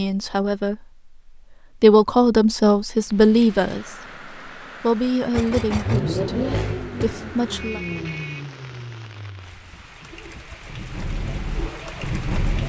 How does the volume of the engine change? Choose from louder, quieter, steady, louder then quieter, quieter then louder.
quieter then louder.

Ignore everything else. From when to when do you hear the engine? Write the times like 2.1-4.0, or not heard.
5.3-12.6.